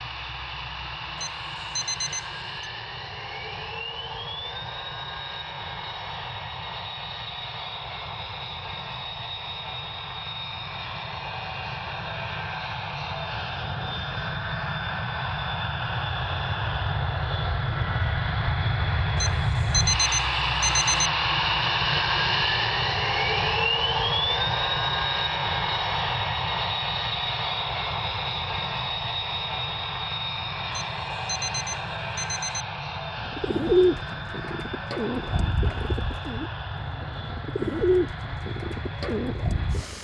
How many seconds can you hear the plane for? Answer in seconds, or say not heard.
40 s.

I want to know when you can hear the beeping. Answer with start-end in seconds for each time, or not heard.
1.1-2.6, 19.1-21.1, 30.7-32.6.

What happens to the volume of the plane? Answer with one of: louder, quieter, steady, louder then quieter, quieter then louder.
louder then quieter.